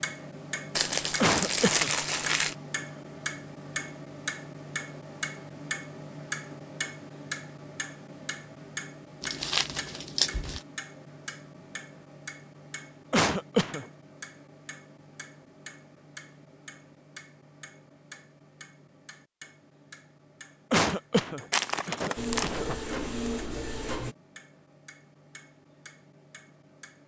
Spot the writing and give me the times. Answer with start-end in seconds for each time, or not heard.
not heard.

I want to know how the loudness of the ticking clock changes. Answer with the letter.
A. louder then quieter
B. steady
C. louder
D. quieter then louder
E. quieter
E.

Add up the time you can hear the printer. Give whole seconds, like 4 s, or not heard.
2 s.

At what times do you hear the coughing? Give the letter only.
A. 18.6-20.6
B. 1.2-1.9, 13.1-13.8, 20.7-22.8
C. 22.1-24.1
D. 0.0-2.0
B.